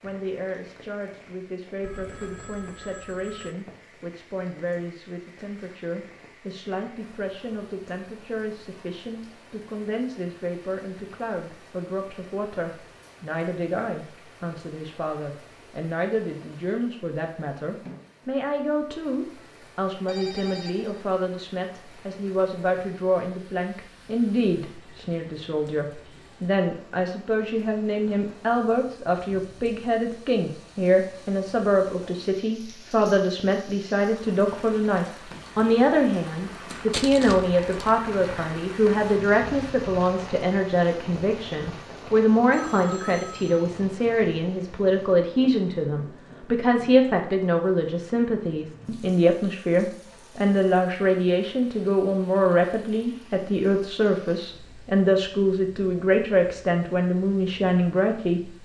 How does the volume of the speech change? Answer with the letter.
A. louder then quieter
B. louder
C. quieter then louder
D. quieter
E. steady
B.